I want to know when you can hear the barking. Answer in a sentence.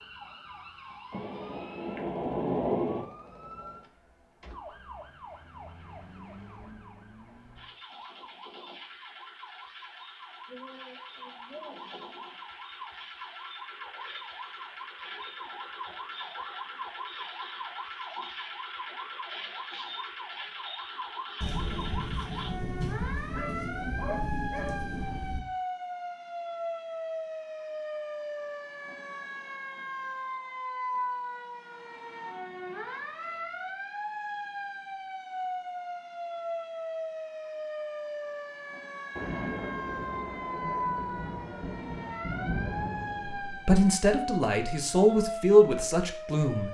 You can hear the barking from 23.3 to 24.8 s.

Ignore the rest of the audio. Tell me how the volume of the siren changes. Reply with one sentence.
The volume of the siren goes up.